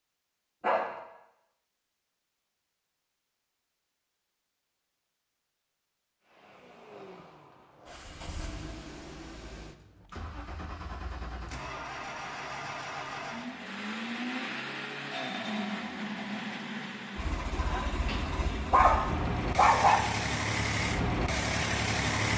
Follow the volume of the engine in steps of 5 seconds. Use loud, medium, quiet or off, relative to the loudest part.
off, quiet, medium, medium, loud.